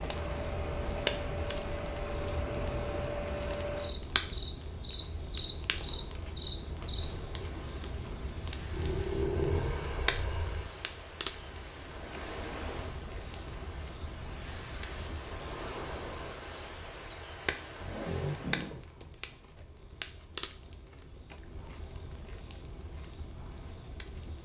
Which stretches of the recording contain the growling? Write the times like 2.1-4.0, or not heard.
8.7-10.7, 17.8-18.9.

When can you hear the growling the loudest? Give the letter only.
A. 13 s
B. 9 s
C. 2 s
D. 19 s
B.